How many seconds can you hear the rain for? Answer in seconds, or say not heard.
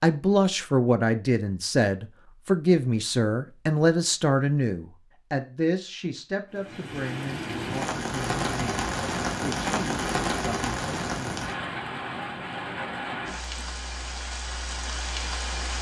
9 s.